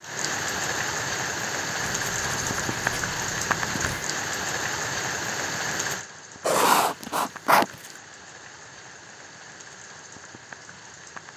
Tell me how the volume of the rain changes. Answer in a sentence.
The volume of the rain goes down.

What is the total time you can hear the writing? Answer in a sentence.
The writing can be heard for 4 seconds in total.